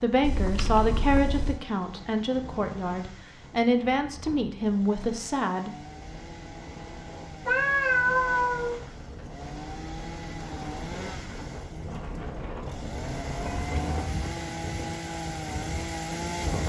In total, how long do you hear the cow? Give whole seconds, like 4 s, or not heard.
not heard.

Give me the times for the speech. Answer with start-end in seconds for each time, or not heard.
0.0-5.8.